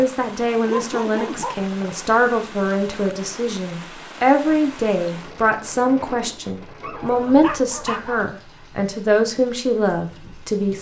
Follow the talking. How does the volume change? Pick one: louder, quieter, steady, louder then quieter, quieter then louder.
steady.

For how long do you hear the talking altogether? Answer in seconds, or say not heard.
11 s.